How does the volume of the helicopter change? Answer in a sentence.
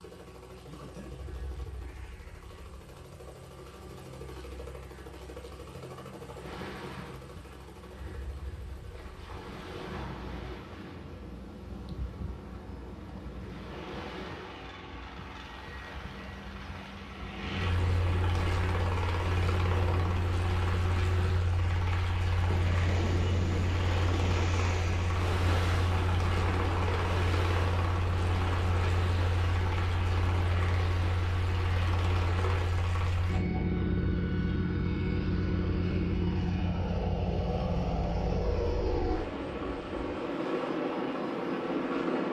The volume of the helicopter goes up.